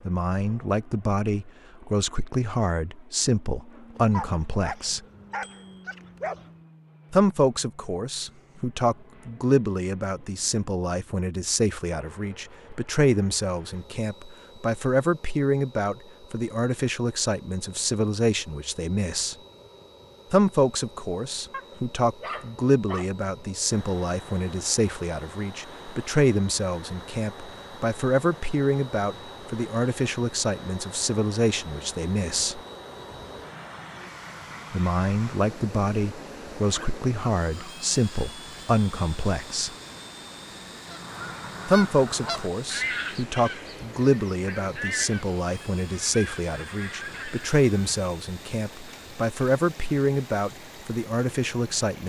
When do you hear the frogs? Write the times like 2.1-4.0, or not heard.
not heard.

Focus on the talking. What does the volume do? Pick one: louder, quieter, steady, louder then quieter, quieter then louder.
steady.